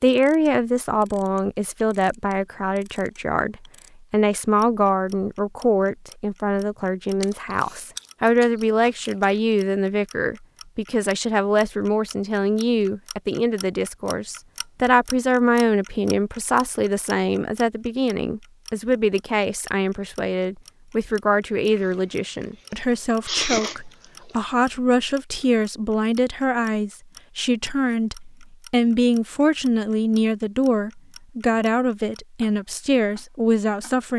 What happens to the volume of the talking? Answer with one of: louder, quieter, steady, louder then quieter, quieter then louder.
steady.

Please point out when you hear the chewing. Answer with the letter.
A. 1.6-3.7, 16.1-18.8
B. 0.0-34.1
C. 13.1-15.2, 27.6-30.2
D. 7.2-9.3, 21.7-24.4
D.